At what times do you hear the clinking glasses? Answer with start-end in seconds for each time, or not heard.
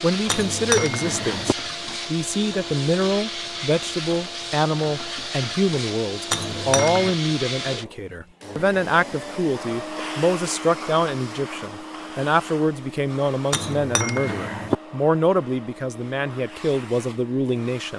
0.2-1.6, 6.3-7.2, 13.5-14.8.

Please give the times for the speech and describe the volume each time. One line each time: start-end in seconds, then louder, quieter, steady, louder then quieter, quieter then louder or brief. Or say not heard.
0.0-17.9 steady.